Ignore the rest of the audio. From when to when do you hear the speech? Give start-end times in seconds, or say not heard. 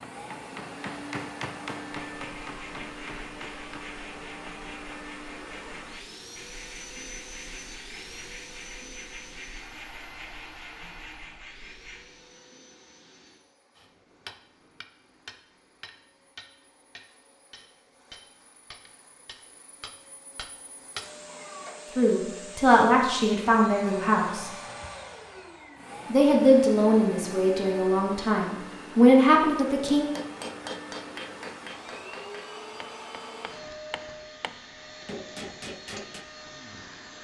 21.9-24.5, 26.1-30.1.